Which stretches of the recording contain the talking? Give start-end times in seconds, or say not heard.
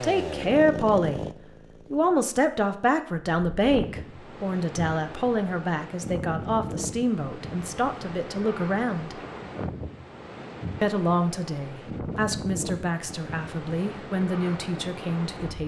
0.0-1.2, 1.9-9.2, 10.8-15.6.